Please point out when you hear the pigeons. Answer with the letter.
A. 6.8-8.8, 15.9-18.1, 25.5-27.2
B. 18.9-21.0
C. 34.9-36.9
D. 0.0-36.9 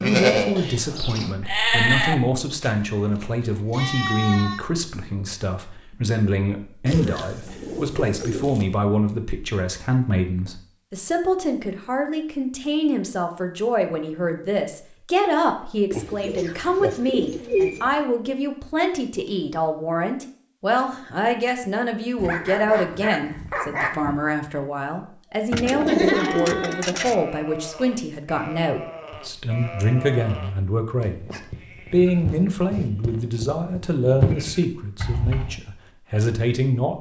A.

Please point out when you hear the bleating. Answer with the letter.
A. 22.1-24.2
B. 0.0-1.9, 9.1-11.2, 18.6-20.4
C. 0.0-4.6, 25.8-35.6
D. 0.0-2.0
C.